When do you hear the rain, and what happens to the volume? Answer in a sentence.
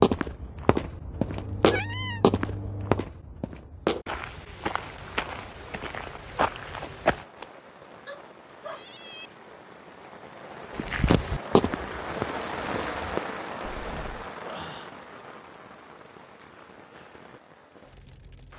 You can hear the rain from 4.7 to 18.5 s, getting louder then quieter.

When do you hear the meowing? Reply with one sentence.
The meowing can be heard from 1.1 to 3.0 s, from 8.1 to 9.3 s and from 13.7 to 14.3 s.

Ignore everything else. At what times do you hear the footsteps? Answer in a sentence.
The footsteps can be heard from 0.0 to 7.5 s and from 10.8 to 13.2 s.